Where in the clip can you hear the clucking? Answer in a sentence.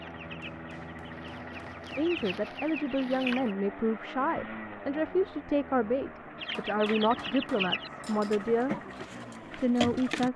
You can hear the clucking from 0.0 to 3.5 s and from 6.4 to 10.3 s.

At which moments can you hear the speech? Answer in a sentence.
The speech can be heard from 1.9 to 8.8 s and from 9.6 to 10.3 s.